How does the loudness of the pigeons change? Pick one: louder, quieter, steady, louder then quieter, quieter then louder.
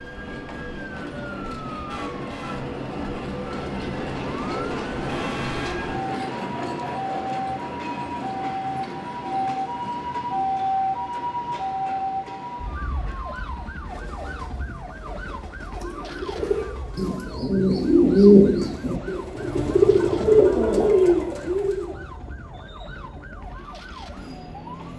louder.